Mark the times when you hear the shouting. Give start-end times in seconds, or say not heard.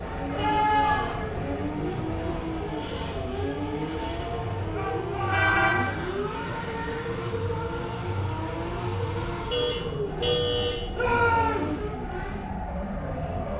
0.3-1.2, 4.7-5.8, 10.9-11.8.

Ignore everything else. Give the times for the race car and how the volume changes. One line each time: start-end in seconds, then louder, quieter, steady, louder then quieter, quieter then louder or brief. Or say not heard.
0.0-13.5 steady.